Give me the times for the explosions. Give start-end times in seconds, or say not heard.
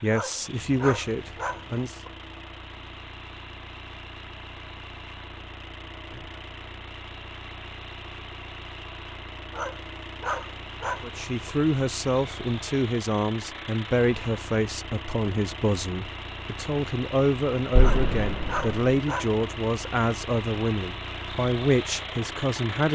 17.8-18.9.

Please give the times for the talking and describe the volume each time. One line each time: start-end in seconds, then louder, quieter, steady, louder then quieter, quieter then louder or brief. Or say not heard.
0.0-2.0 brief
11.0-22.9 steady.